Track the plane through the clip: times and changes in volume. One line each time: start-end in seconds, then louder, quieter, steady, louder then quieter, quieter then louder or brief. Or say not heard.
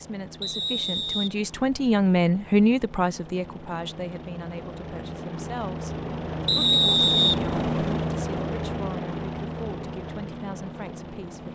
0.0-11.5 louder then quieter.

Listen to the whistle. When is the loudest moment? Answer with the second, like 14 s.
7 s.